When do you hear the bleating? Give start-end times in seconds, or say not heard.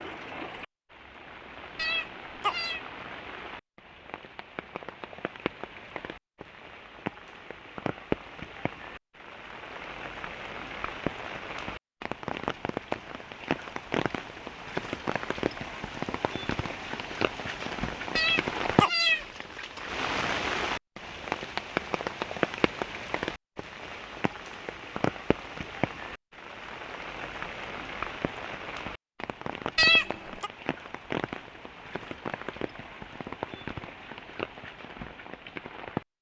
not heard.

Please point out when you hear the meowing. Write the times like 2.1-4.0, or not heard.
1.8-2.8, 18.1-19.2, 29.8-30.5.